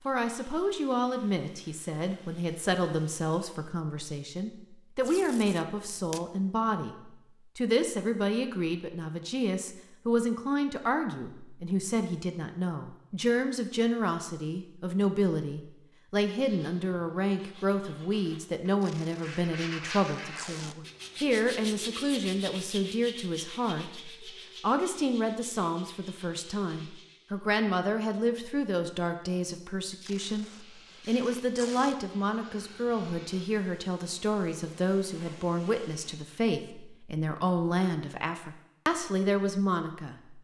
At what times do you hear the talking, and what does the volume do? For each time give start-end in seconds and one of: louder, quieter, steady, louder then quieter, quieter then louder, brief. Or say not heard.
0.1-40.3 steady.